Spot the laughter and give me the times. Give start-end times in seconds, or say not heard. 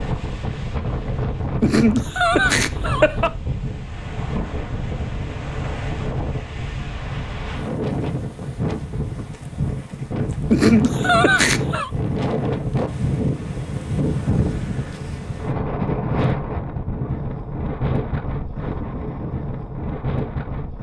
1.6-3.4, 10.5-11.9.